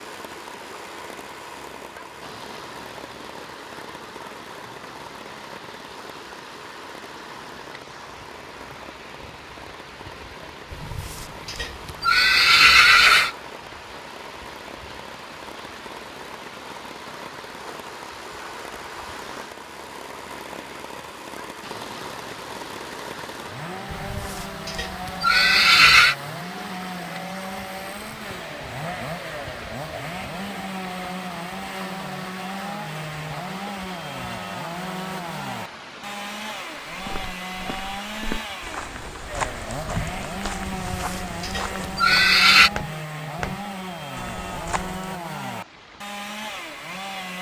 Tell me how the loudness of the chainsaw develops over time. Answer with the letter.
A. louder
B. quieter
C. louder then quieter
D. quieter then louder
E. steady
A.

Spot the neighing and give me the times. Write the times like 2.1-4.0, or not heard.
10.7-13.3, 23.9-26.1, 40.6-42.7.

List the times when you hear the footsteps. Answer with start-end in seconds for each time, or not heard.
36.9-45.1.